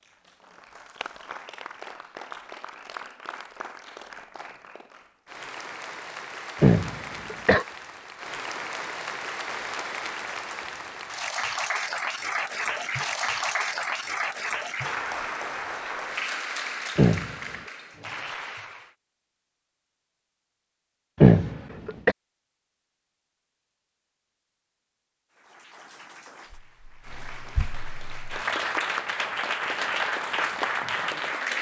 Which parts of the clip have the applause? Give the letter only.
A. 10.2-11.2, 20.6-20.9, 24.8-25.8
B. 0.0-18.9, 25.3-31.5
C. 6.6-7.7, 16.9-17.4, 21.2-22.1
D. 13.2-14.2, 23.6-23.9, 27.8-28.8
B.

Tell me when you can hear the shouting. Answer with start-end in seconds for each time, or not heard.
not heard.